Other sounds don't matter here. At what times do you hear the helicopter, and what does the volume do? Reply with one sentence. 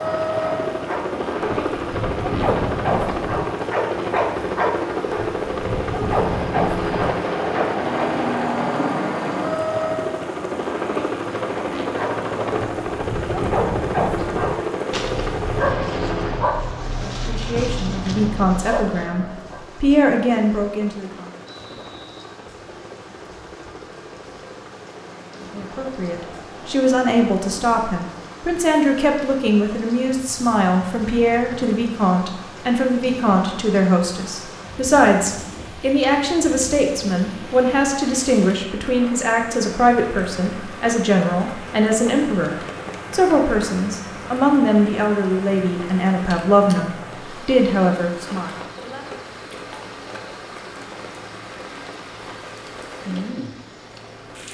The helicopter can be heard from 0.0 to 54.4 s, getting quieter.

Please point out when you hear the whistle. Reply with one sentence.
The whistle can be heard from 21.4 to 22.2 s.